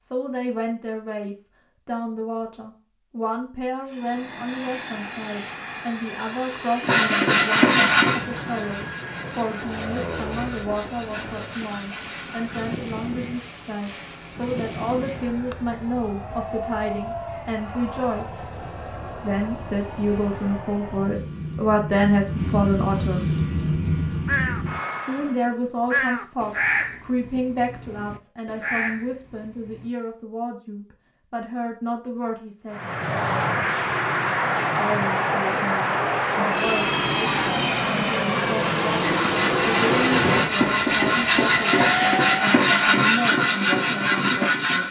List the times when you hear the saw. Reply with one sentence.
You can hear the saw from 6.8 to 12.8 s and from 39.0 to 44.8 s.